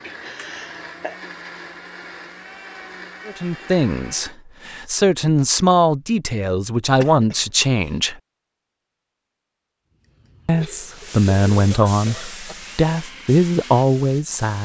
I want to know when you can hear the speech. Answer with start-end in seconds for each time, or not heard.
3.2-8.2, 10.4-14.6.